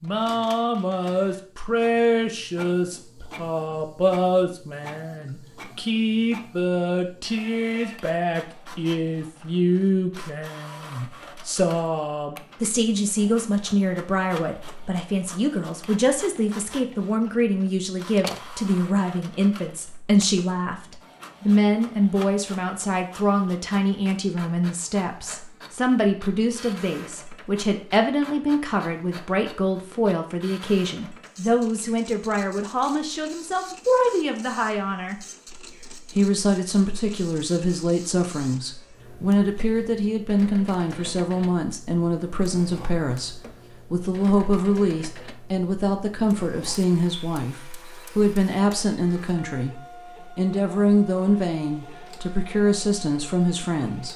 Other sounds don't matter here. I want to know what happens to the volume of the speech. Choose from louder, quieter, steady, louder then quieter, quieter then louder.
steady.